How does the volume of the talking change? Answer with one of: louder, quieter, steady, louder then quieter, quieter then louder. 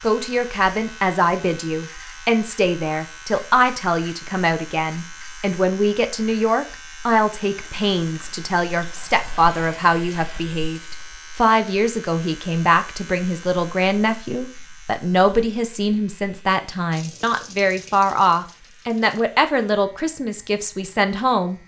steady.